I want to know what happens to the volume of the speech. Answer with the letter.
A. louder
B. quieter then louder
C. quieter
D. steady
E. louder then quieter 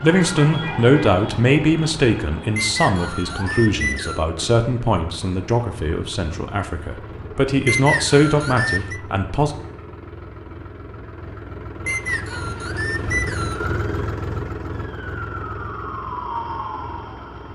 B.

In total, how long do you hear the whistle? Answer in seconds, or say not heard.
5 s.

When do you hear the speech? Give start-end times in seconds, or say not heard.
0.0-9.5.